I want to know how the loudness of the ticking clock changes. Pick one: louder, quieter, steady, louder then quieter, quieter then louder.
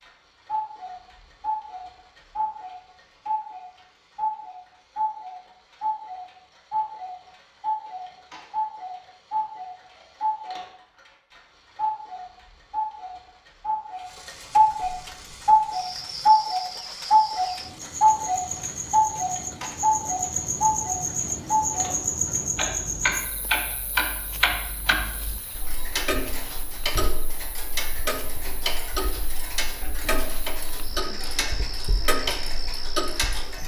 louder then quieter.